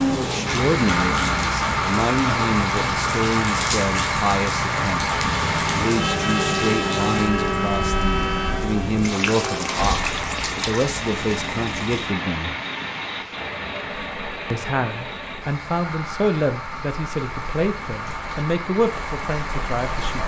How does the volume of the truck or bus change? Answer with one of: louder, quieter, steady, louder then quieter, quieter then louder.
quieter.